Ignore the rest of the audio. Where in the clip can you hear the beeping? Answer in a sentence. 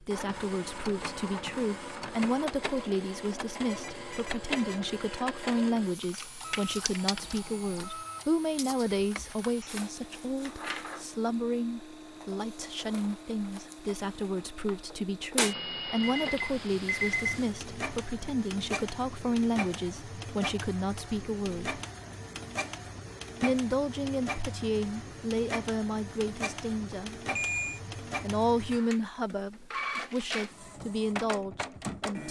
The beeping can be heard from 3.6 to 5.0 s, from 16.0 to 17.6 s and from 26.9 to 27.8 s.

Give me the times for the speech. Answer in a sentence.
You can hear the speech from 0.0 to 21.8 s, from 23.4 to 27.2 s and from 28.2 to 32.2 s.